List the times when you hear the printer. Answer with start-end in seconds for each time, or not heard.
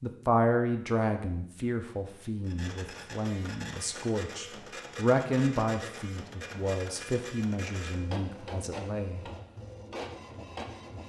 2.4-11.0.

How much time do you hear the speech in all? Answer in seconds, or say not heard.
9 s.